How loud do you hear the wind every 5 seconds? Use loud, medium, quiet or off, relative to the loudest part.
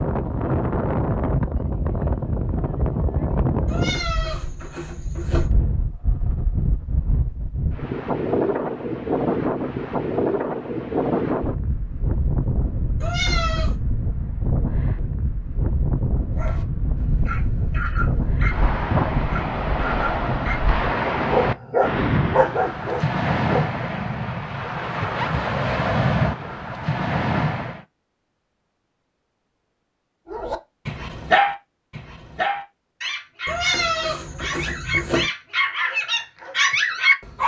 loud, loud, loud, loud, loud, loud, off, off.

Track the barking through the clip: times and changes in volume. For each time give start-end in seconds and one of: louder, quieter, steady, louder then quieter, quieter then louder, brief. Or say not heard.
16.3-23.7 louder
30.3-37.4 quieter then louder.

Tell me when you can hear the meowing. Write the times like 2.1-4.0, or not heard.
3.6-5.5, 13.0-13.8, 33.5-35.3.